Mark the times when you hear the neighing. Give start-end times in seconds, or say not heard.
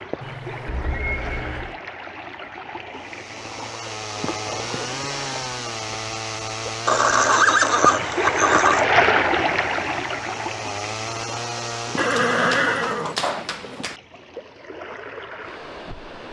0.2-1.8, 6.8-8.8, 11.9-13.9.